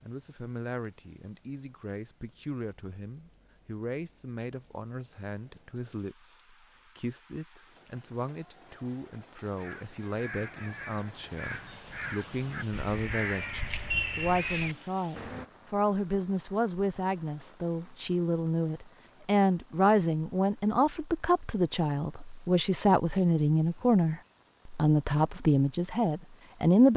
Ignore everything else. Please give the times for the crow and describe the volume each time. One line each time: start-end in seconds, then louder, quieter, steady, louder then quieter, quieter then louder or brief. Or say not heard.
9.4-15.4 louder.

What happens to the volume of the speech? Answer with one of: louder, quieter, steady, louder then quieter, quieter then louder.
louder.